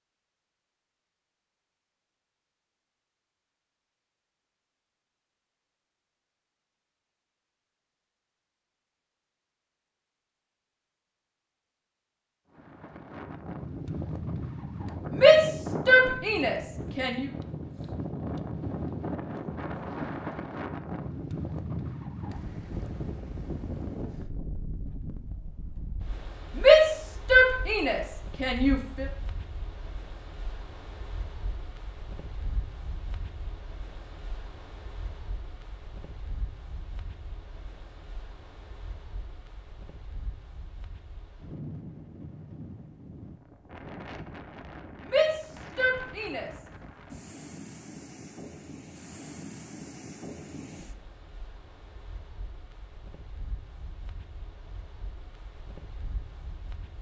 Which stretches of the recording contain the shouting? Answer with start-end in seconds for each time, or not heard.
15.1-17.2, 26.6-29.1, 45.0-46.5.